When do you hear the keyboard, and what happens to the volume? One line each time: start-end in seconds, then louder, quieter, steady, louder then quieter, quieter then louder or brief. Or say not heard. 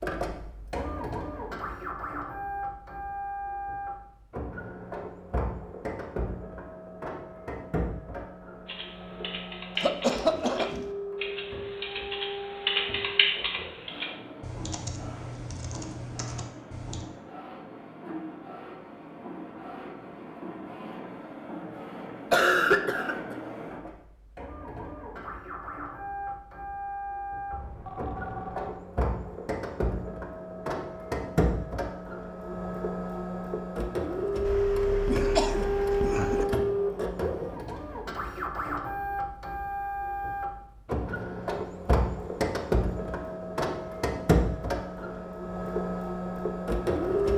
8.7-17.1 louder then quieter.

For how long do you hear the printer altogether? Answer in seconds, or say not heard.
47 s.